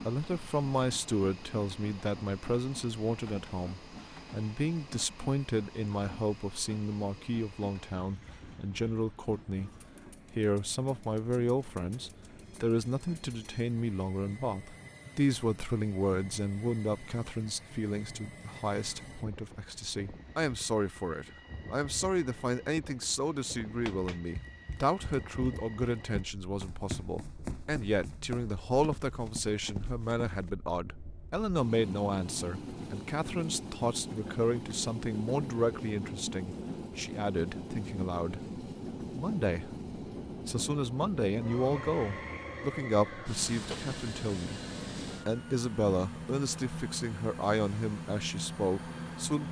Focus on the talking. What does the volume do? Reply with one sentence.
The volume of the talking stays about the same.